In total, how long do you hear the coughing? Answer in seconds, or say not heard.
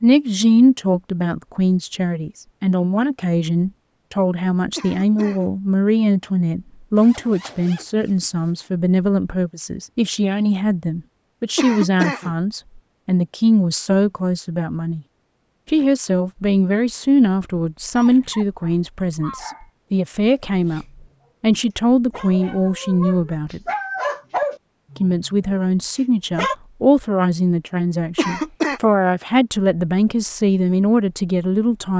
2 s.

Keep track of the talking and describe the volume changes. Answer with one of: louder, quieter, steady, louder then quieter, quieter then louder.
steady.